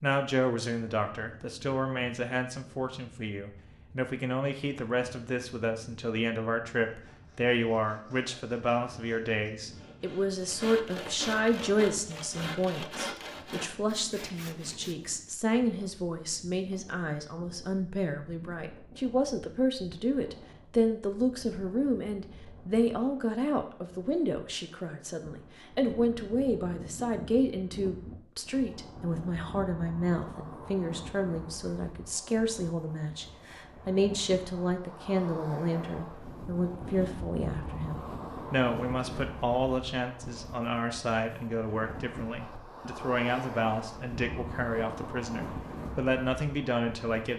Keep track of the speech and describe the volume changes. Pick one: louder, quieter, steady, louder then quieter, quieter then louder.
steady.